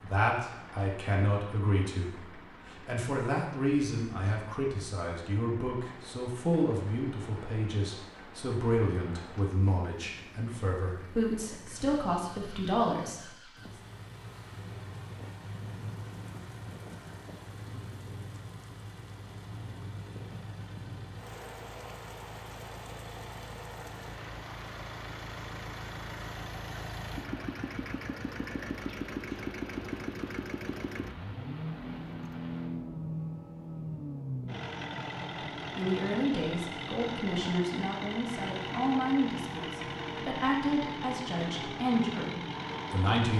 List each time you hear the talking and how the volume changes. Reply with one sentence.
The talking can be heard from 0.0 to 13.3 s, at a steady volume; and from 35.8 to 43.3 s, at a steady volume.